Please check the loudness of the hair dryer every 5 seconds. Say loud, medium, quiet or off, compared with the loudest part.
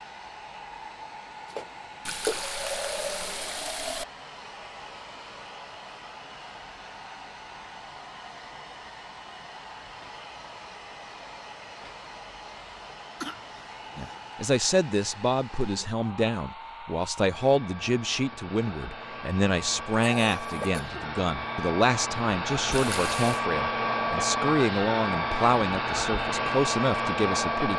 quiet, quiet, quiet, quiet, loud, loud.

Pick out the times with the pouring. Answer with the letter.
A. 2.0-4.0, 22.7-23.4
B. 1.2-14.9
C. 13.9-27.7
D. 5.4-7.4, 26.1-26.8
A.